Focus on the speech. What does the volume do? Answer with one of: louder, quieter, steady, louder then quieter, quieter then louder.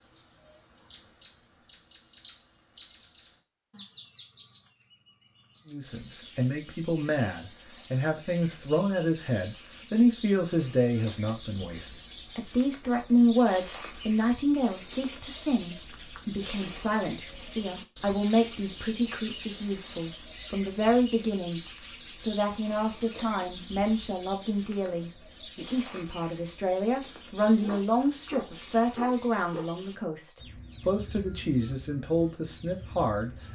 steady.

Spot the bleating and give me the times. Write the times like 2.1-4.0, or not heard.
not heard.